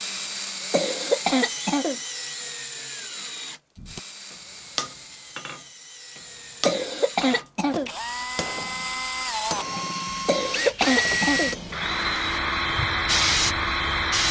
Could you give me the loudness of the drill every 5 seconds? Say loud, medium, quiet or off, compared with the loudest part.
medium, medium, loud.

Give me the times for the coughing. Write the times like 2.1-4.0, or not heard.
0.7-2.0, 6.7-7.9, 10.2-11.6.